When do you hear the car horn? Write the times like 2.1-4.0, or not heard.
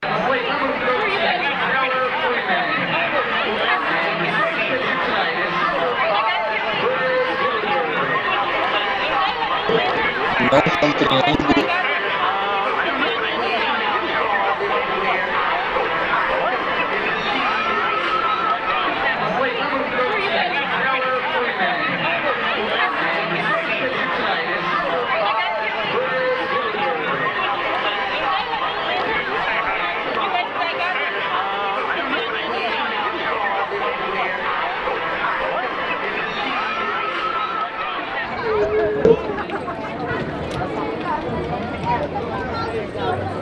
not heard.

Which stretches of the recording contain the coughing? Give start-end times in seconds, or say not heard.
9.2-11.7, 38.6-39.1.